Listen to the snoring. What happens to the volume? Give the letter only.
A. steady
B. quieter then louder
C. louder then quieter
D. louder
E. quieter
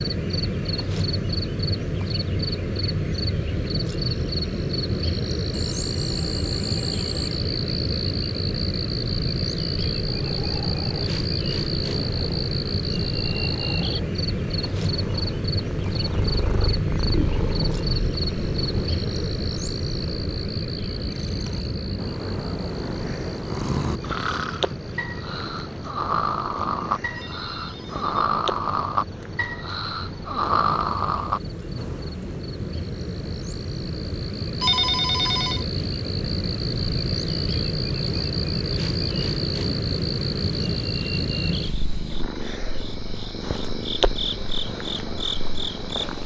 D.